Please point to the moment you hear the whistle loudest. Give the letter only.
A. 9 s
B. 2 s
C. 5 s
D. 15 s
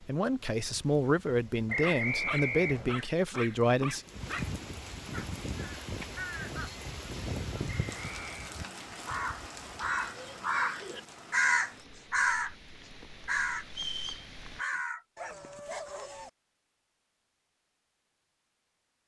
B.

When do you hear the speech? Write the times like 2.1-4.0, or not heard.
0.0-4.0.